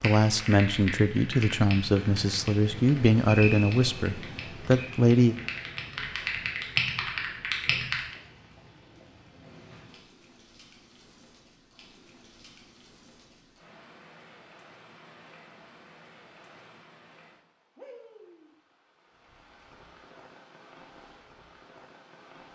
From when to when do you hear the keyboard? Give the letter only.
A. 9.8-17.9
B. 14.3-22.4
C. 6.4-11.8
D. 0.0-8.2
D.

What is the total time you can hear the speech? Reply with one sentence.
You can hear the speech for 5 seconds altogether.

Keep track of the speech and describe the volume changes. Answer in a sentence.
The loudness of the speech stays about the same.